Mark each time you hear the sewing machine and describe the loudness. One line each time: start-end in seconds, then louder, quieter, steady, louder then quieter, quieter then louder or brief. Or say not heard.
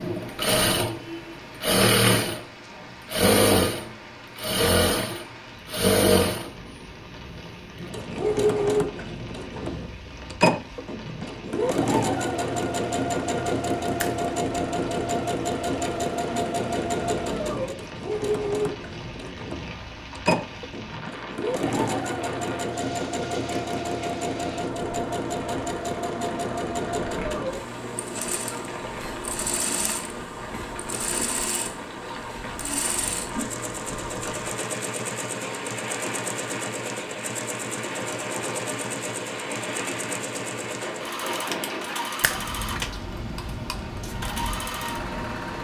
0.0-45.5 quieter.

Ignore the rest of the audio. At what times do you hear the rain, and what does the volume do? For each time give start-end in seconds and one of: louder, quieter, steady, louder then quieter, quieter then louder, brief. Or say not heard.
0.0-45.5 louder.